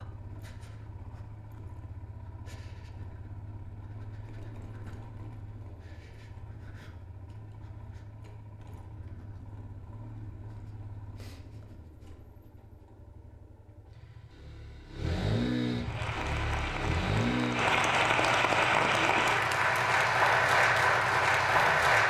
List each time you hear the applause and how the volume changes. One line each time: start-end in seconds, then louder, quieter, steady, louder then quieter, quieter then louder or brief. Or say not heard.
15.8-22.0 louder.